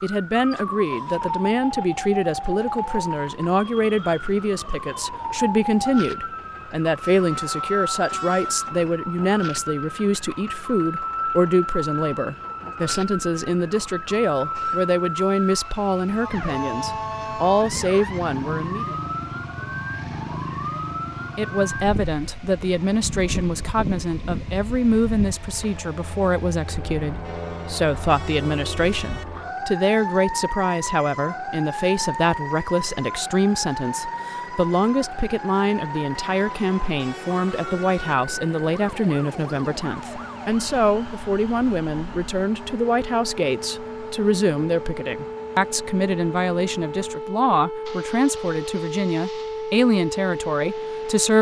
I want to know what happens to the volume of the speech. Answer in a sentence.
The loudness of the speech stays about the same.